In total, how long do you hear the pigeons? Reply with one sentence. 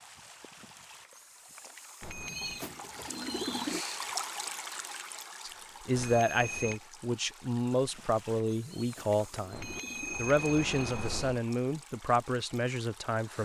You can hear the pigeons for 3 seconds altogether.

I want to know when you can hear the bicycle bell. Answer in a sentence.
The bicycle bell can be heard from 2.0 to 2.6 s, from 6.0 to 6.8 s and from 9.5 to 11.4 s.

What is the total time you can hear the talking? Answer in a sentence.
The talking can be heard for 8 seconds in total.